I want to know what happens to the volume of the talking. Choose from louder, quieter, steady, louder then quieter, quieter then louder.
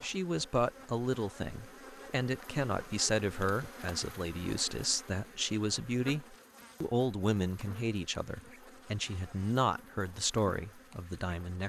steady.